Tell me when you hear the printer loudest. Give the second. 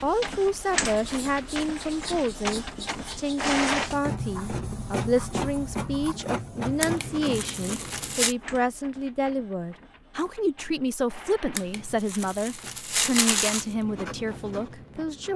4 s.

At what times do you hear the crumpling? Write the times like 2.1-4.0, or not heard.
0.3-2.4, 6.8-8.3, 11.6-13.7.